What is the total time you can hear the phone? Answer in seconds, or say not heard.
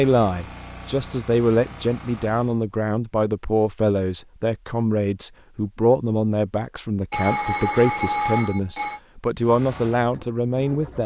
2 s.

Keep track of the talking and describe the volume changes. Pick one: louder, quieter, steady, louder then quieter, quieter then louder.
steady.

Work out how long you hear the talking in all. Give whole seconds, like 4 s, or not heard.
11 s.